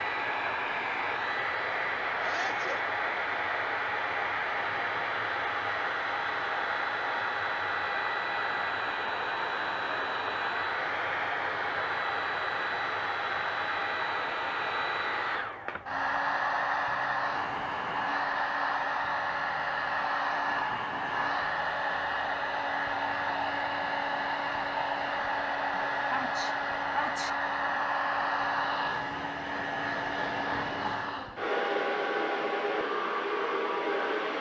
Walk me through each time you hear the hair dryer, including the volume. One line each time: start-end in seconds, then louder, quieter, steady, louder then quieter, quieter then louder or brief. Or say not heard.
0.0-34.3 steady.